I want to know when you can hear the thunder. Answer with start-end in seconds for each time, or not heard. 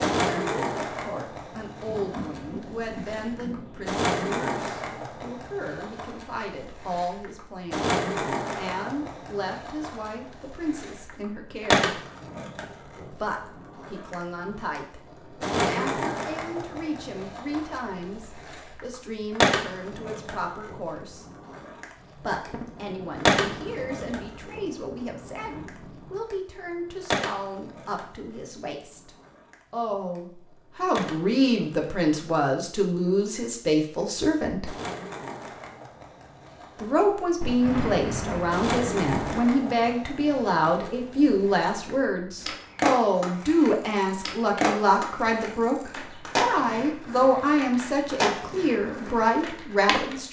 1.9-3.9, 22.3-26.2, 37.4-39.4.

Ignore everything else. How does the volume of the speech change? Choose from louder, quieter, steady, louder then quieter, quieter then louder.
louder.